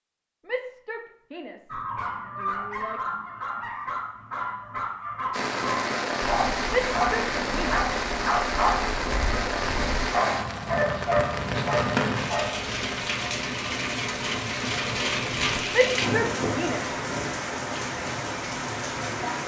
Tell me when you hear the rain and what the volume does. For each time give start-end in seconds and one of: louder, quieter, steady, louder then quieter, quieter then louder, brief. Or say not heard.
5.3-19.4 steady.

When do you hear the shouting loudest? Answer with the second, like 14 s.
16 s.